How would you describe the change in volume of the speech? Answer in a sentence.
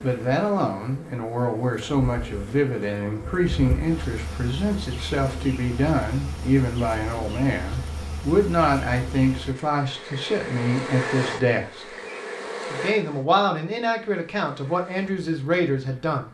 The volume of the speech stays about the same.